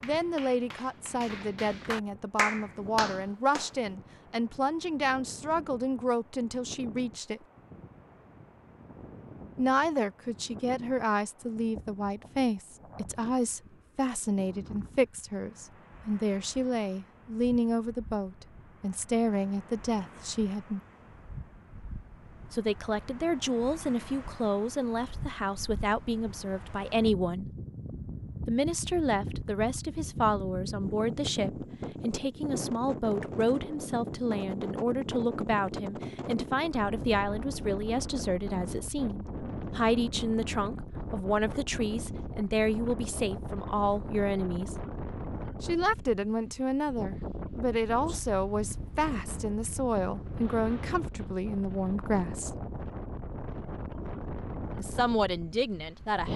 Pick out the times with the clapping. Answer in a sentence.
The clapping can be heard from 0.0 to 3.7 s.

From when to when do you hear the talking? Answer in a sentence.
The talking can be heard from 0.0 to 7.4 s, from 9.6 to 20.8 s, from 22.4 to 27.5 s, from 28.4 to 44.8 s, from 45.6 to 52.5 s and from 54.8 to 56.3 s.